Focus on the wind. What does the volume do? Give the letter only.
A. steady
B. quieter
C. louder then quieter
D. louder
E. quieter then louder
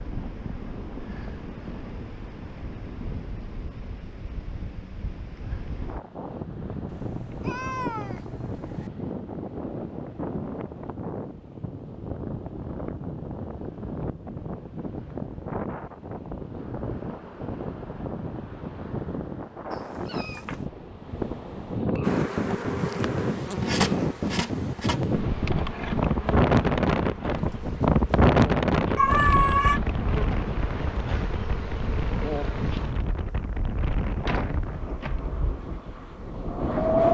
C.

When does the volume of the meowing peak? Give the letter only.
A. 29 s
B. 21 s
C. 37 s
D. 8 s
A.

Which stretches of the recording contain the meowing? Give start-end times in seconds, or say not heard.
6.8-8.9, 20.1-20.6, 28.9-29.8.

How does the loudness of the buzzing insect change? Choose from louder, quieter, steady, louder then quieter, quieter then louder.
quieter.